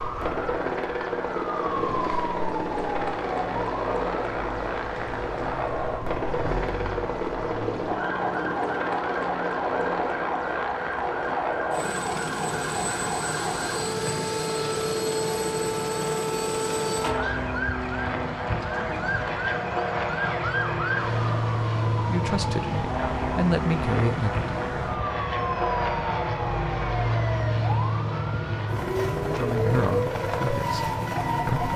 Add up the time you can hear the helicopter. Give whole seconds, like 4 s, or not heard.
32 s.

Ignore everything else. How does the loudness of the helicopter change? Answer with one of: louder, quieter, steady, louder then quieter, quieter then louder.
steady.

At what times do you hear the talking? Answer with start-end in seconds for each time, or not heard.
22.1-24.6, 29.2-31.7.